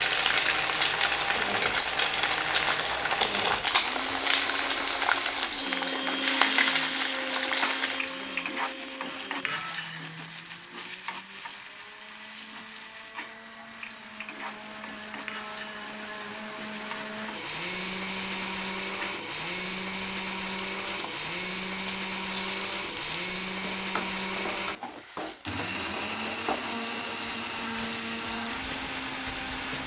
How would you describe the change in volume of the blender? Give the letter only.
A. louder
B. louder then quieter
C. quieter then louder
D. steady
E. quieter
C.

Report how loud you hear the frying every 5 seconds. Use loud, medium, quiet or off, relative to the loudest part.
loud, loud, quiet, quiet, quiet, quiet.